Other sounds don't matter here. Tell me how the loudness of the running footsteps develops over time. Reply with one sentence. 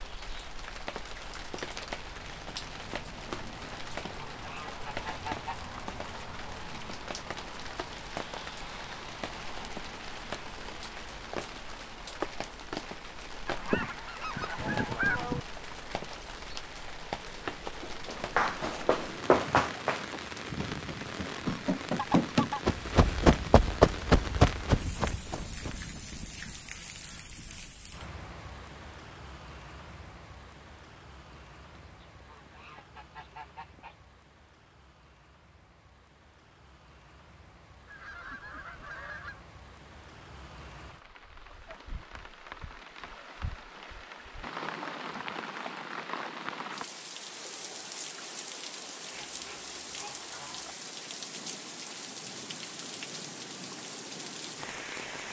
The volume of the running footsteps goes down, then up.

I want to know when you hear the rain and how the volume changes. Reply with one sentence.
The rain can be heard from 0.0 to 55.2 s, getting quieter then louder.